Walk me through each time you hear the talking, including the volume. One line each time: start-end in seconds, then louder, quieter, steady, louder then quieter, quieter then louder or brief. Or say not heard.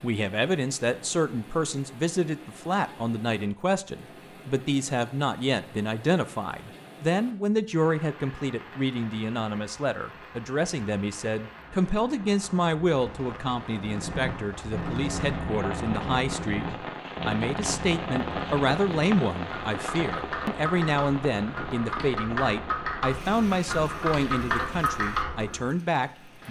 0.0-26.4 steady.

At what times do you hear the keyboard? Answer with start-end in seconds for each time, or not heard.
13.8-25.7.